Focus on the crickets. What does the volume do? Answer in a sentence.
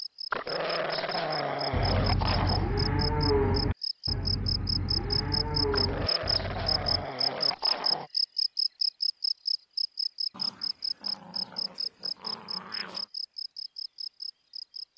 The loudness of the crickets goes up, then down.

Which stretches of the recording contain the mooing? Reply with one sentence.
The mooing can be heard from 1.7 to 7.1 s.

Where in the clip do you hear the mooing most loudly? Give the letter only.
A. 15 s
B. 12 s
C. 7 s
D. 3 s
D.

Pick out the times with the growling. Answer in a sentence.
You can hear the growling from 0.3 to 2.7 s, from 5.7 to 8.1 s and from 10.3 to 13.1 s.